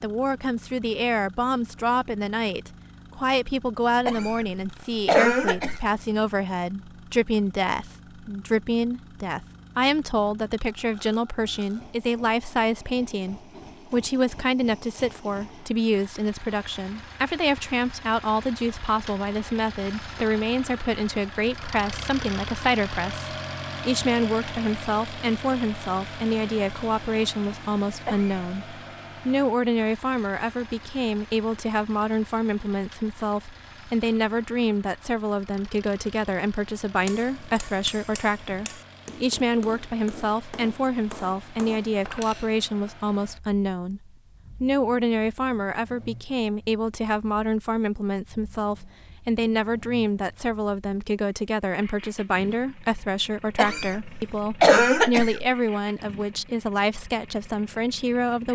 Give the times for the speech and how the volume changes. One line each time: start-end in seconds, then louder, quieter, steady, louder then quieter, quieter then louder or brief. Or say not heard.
0.0-58.5 steady.